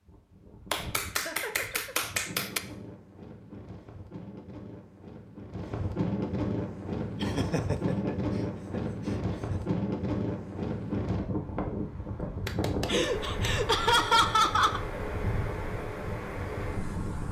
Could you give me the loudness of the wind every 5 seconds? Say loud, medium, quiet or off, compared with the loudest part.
quiet, loud, loud, loud.